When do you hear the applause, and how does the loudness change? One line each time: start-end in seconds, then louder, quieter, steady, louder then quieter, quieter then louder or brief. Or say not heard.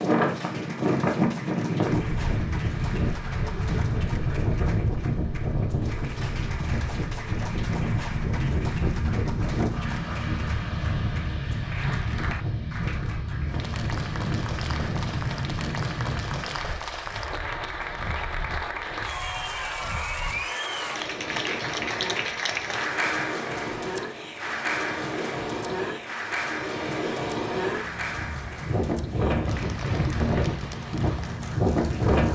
0.0-32.3 louder then quieter.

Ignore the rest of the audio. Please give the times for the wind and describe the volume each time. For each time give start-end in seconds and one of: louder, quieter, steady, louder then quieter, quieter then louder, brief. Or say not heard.
0.0-32.3 quieter then louder.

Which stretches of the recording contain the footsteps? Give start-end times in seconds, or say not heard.
not heard.